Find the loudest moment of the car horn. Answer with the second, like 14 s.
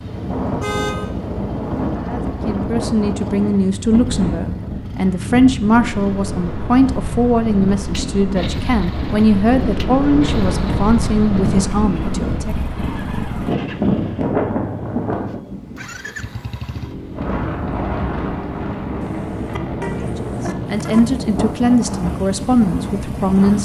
1 s.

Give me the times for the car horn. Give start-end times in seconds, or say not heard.
0.6-1.1, 19.0-21.0.